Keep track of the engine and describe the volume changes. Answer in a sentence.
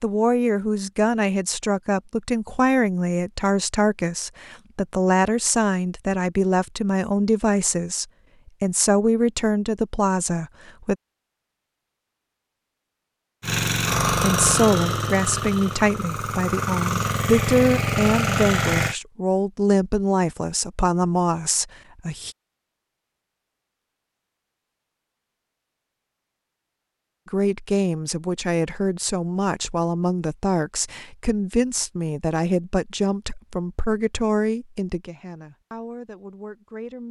The volume of the engine goes down, then up.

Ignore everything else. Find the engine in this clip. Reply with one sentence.
You can hear the engine from 13.4 to 18.9 s.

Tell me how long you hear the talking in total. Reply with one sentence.
The talking can be heard for 29 seconds in total.